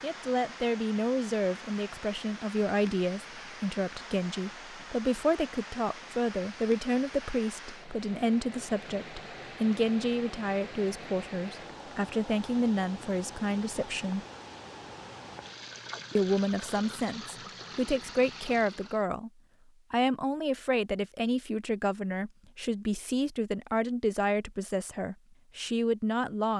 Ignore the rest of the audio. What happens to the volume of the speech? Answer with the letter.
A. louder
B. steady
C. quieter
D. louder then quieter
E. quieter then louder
B.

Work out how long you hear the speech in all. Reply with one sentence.
You can hear the speech for 24 seconds altogether.